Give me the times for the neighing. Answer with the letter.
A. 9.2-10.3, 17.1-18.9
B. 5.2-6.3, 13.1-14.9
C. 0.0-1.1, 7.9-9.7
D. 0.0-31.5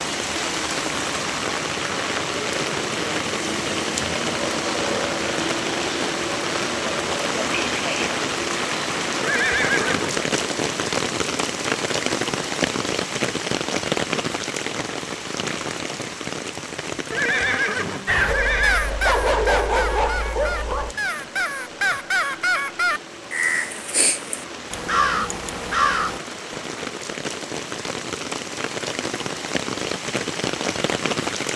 A.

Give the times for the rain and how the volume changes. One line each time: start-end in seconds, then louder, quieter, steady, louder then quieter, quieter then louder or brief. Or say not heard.
0.0-31.5 quieter then louder.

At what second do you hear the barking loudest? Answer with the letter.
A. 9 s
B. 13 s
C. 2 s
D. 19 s
D.